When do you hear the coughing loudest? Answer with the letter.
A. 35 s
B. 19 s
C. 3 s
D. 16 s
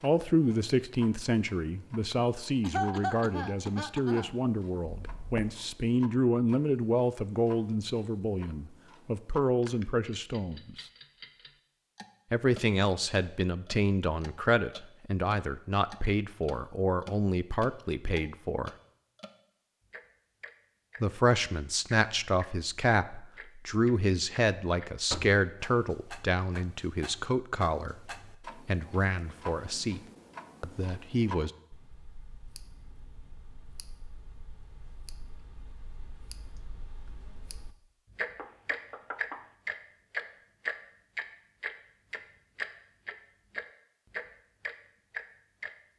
C.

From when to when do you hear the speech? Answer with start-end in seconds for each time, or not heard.
0.0-10.8, 12.3-18.7, 21.0-30.0, 30.6-31.5.